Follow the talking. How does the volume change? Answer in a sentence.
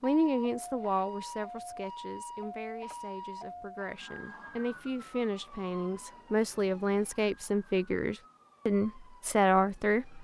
The volume of the talking goes down, then up.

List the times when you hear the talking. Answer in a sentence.
The talking can be heard from 0.0 to 10.1 s.